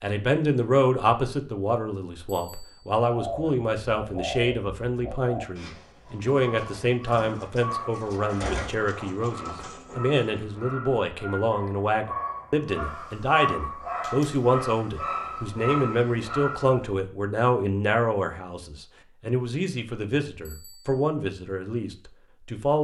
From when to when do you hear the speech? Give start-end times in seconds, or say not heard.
0.0-22.8.